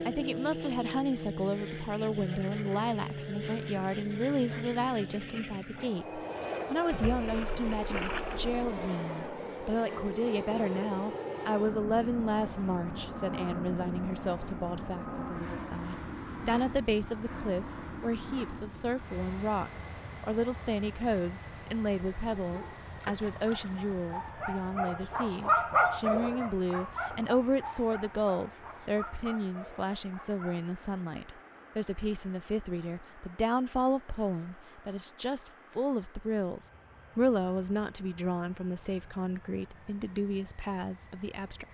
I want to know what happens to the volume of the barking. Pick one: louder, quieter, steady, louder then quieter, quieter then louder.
louder then quieter.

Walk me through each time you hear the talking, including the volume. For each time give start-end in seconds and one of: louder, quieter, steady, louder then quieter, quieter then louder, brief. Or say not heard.
0.1-41.6 steady.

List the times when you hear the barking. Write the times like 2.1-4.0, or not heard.
22.4-30.6.